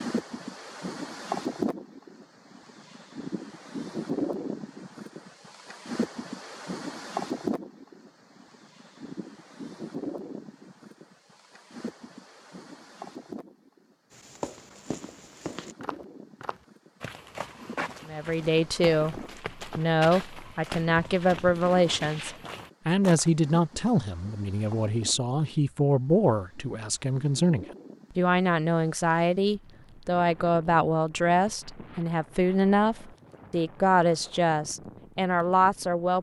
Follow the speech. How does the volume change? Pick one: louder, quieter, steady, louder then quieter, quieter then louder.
steady.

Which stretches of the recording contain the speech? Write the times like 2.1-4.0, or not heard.
18.1-36.1.